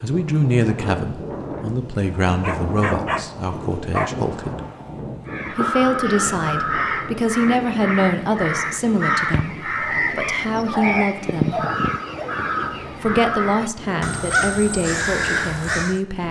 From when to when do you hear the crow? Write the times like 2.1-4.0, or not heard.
5.2-16.0.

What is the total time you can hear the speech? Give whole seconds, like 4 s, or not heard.
14 s.